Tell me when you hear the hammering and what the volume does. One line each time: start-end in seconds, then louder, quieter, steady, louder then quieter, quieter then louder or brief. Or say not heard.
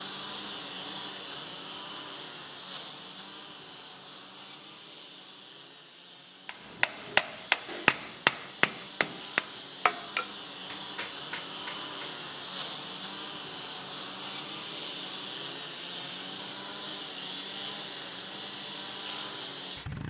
6.5-12.2 quieter.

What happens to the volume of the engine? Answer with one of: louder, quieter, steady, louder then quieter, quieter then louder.
quieter then louder.